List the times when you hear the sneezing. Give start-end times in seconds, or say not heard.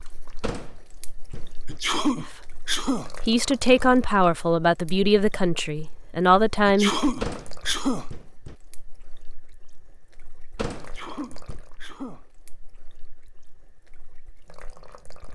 1.6-3.1, 6.7-8.1, 10.8-12.2.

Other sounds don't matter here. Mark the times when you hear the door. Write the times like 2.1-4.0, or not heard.
0.4-1.8, 7.2-8.6, 10.6-11.6.